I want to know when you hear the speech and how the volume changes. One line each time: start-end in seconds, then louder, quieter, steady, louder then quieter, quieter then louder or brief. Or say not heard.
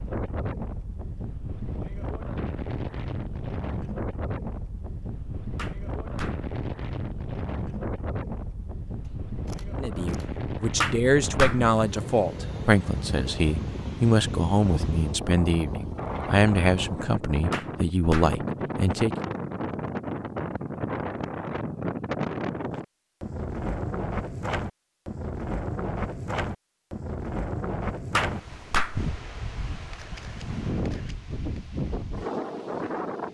9.8-19.1 steady.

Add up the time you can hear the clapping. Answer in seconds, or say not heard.
4 s.